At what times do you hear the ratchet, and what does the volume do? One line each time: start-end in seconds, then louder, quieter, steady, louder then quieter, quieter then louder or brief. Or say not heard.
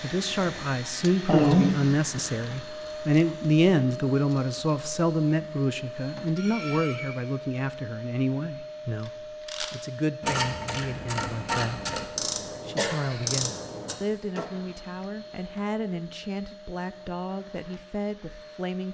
9.0-14.4 steady.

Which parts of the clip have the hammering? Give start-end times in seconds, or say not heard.
not heard.